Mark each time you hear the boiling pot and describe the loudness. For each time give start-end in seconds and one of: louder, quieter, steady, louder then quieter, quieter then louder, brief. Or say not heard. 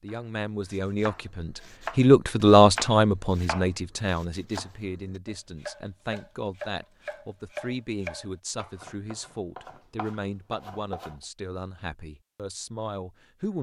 not heard.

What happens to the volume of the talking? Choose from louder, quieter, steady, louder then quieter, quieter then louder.
quieter.